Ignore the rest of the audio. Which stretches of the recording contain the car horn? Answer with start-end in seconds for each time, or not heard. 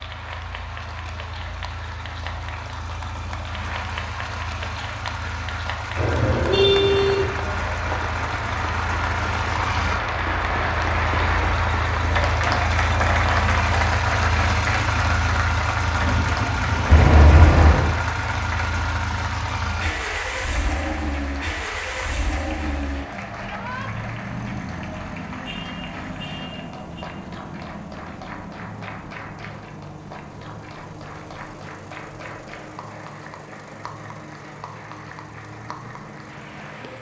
6.0-7.3, 16.9-17.9, 25.4-27.1.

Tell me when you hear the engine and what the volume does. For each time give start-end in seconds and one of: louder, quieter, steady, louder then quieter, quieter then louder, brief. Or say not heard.
0.0-36.9 louder then quieter.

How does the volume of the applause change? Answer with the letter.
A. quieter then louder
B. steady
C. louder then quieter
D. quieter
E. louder
C.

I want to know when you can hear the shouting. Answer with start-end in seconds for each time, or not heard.
23.4-23.9.